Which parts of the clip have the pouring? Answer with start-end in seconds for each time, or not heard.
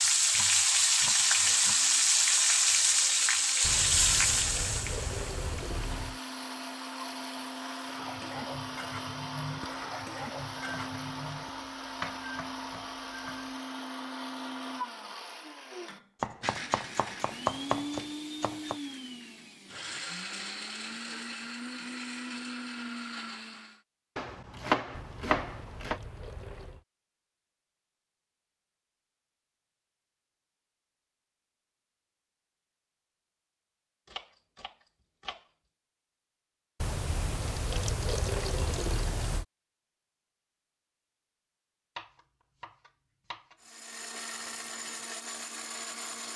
3.6-6.2, 24.9-26.9, 36.8-39.5.